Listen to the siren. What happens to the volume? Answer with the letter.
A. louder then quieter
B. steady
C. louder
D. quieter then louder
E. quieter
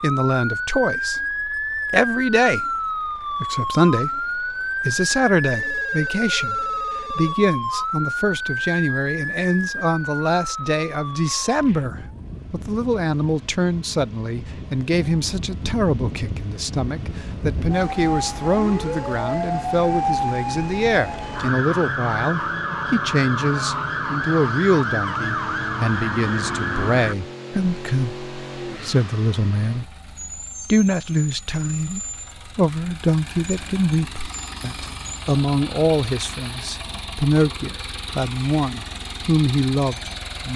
D.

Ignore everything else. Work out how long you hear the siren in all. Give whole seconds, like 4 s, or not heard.
27 s.